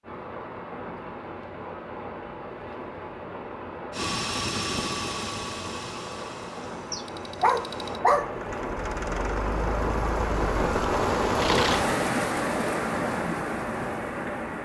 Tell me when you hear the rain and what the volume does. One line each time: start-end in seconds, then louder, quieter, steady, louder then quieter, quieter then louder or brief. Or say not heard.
0.0-14.6 louder.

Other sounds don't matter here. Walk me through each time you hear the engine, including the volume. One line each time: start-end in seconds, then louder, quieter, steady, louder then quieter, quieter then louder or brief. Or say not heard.
3.9-11.8 quieter then louder.